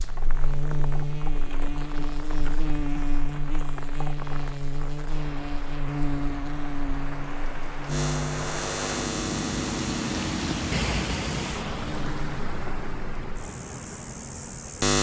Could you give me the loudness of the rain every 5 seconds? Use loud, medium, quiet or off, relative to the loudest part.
medium, loud, loud.